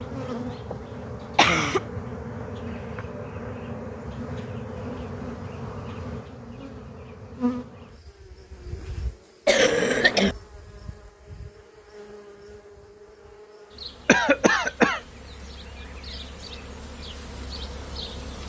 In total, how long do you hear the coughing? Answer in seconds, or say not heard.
2 s.